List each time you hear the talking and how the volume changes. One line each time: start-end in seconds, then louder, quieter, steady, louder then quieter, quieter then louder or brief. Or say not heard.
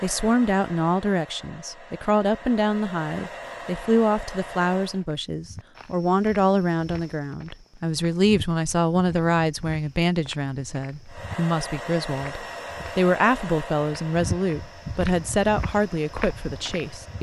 0.0-17.1 steady.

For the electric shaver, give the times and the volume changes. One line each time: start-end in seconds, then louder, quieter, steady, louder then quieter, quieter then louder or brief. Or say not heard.
not heard.